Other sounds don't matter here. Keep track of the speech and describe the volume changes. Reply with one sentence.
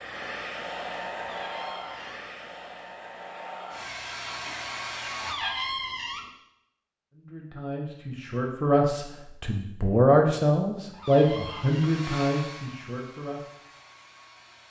The volume of the speech goes up, then down.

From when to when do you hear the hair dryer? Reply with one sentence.
The hair dryer can be heard from 0.0 to 5.3 s and from 11.1 to 14.6 s.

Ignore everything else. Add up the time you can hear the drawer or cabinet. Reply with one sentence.
You can hear the drawer or cabinet for 3 seconds altogether.